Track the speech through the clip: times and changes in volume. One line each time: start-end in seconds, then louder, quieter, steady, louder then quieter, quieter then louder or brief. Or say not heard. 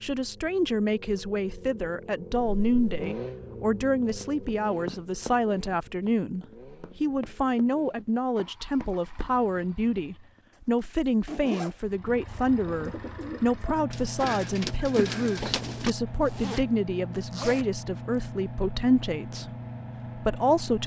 0.0-19.5 steady
20.1-20.8 brief.